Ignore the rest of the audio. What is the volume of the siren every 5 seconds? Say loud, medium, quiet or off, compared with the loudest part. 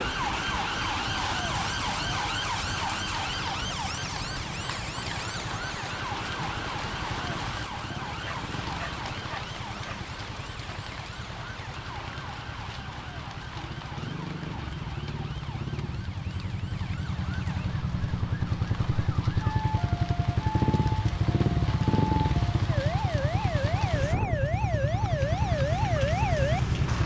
loud, medium, quiet, quiet, loud, loud.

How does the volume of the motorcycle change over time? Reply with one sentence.
The volume of the motorcycle goes up.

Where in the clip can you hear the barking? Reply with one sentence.
You can hear the barking from 8.2 to 10.0 s.